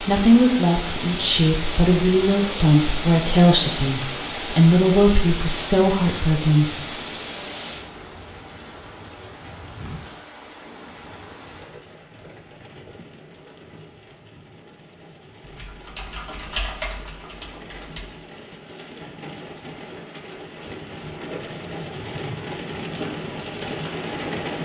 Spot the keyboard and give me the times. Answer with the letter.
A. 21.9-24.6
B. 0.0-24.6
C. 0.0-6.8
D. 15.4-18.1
D.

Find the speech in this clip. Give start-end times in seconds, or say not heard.
0.0-6.8.